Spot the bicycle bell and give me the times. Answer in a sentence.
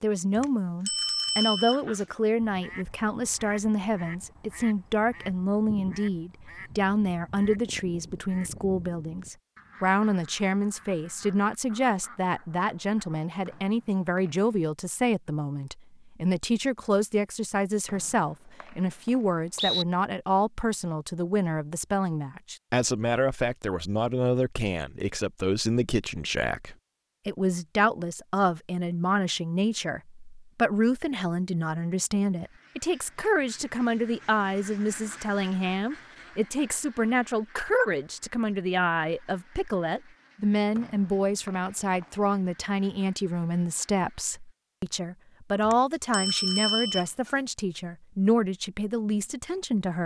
The bicycle bell can be heard from 0.3 to 2.0 s and from 45.6 to 47.4 s.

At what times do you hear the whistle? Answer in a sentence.
You can hear the whistle from 13.4 to 14.4 s, from 17.9 to 19.9 s and from 40.8 to 42.0 s.